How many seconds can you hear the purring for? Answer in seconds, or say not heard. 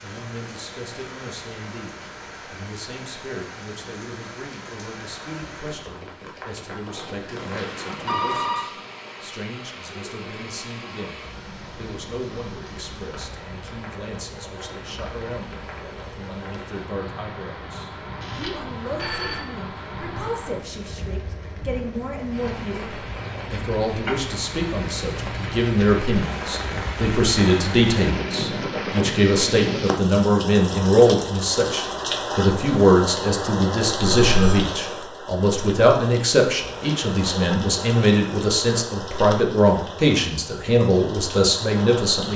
not heard.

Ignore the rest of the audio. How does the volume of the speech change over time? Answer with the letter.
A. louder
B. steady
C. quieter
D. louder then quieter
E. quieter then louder
A.